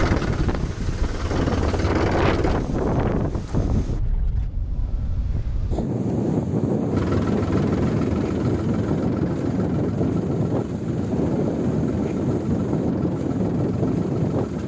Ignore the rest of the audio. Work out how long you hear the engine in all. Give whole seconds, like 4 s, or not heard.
10 s.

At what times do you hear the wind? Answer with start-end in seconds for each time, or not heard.
0.0-14.6.